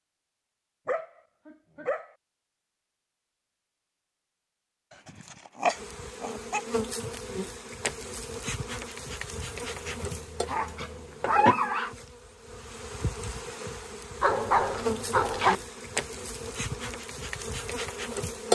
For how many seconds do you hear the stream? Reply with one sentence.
The stream can't be heard in this clip.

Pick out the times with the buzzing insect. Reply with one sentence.
The buzzing insect can be heard from 5.7 to 18.5 s.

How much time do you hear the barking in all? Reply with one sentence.
The barking can be heard for 7 seconds in total.